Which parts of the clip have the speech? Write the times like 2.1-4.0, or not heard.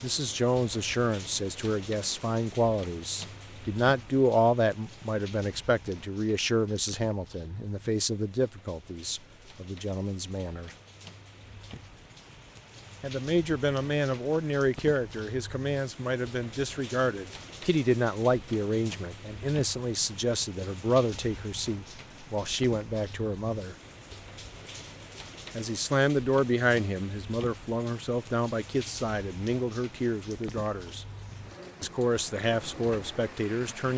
0.0-10.8, 13.0-23.8, 25.6-31.1, 31.8-33.9.